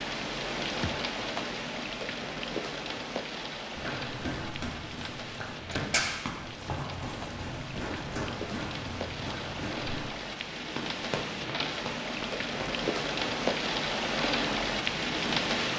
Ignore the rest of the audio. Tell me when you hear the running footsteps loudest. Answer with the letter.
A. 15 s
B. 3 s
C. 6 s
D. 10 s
C.